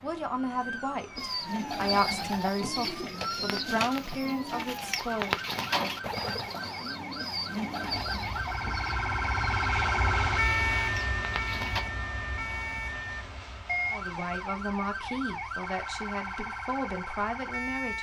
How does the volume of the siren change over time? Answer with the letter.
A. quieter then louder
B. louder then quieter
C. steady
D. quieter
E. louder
B.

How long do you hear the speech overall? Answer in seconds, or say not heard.
9 s.